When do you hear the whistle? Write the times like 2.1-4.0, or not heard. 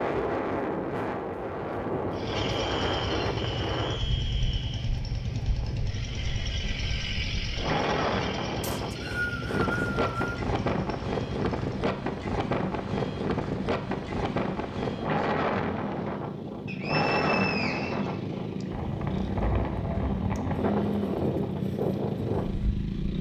2.4-5.0, 8.6-10.4, 16.6-18.6.